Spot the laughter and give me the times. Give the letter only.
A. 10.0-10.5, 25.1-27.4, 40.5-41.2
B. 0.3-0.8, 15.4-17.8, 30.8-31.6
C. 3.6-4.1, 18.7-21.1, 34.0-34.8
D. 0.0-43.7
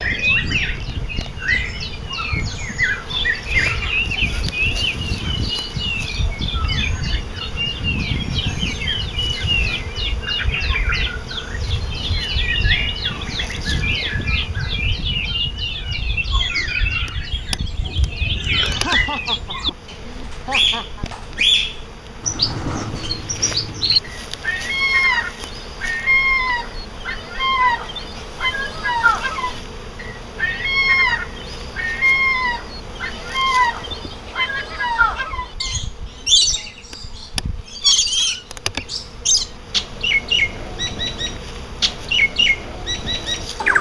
C.